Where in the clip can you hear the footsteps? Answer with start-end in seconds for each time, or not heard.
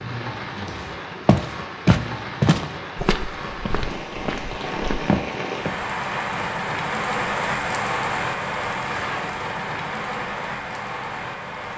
0.7-5.9.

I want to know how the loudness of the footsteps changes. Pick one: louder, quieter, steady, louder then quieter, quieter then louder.
quieter then louder.